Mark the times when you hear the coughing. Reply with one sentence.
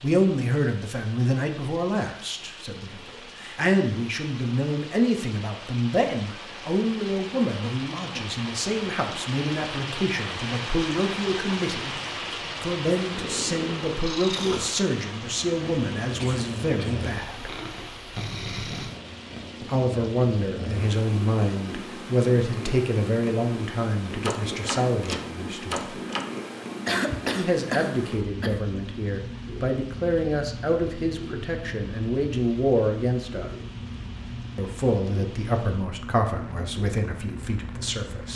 You can hear the coughing from 7.5 to 8.3 s, from 16.1 to 17.1 s and from 26.9 to 28.6 s.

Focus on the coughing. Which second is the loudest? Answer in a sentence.
The loudest moment of the coughing is at 27 seconds.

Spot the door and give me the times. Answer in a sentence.
The door can be heard from 24.2 to 26.2 s.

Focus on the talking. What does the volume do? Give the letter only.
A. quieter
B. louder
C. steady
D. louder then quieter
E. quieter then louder
C.